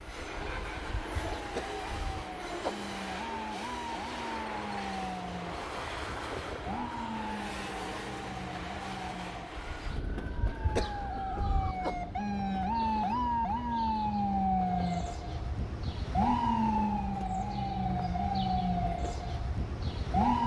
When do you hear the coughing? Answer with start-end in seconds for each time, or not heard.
1.6-2.8, 10.8-11.9.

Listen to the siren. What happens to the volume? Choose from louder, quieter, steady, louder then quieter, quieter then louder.
louder.